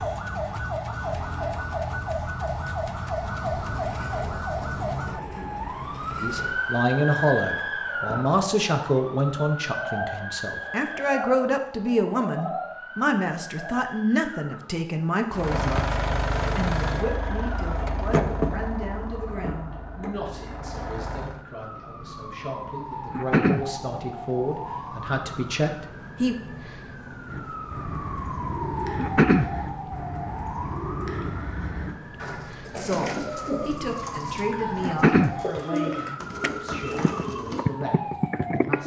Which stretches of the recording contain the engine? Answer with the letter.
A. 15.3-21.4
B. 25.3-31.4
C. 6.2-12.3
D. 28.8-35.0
A.